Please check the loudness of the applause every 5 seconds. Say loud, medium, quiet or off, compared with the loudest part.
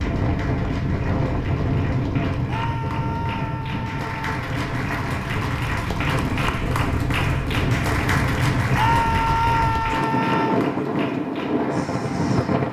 medium, loud, medium.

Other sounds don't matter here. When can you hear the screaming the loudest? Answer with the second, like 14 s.
9 s.